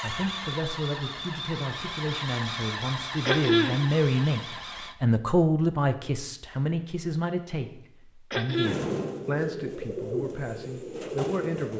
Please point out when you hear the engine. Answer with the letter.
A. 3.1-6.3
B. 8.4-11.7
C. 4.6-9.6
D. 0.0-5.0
D.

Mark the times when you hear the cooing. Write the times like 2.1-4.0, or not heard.
8.4-11.7.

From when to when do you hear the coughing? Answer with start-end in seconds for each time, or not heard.
3.2-3.8, 8.3-8.8.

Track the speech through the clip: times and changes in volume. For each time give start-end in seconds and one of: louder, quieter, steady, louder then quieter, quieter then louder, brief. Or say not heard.
0.0-11.7 louder then quieter.